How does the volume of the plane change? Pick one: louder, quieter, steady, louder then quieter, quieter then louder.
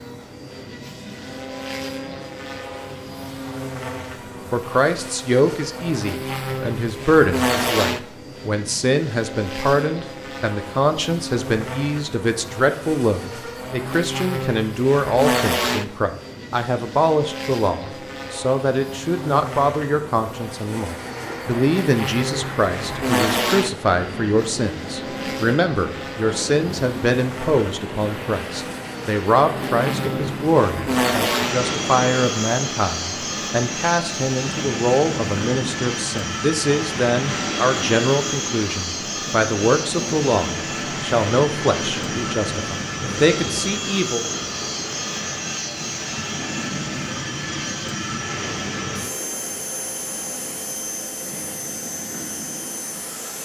steady.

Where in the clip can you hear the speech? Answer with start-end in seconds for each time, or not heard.
4.5-44.2.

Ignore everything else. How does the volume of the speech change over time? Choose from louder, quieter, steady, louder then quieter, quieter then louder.
steady.